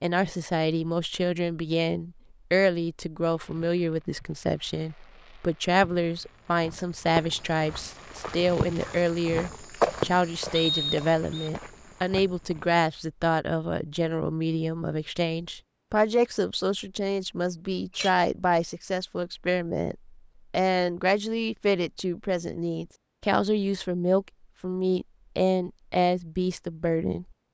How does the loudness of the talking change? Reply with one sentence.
The volume of the talking stays about the same.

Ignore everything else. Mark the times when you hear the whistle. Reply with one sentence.
You can hear the whistle from 10.5 to 11.5 s.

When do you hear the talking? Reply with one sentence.
You can hear the talking from 0.0 to 27.2 s.